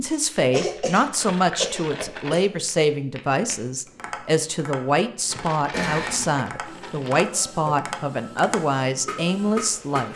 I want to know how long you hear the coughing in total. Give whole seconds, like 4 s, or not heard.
3 s.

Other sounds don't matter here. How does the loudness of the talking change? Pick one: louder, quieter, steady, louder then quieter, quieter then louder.
steady.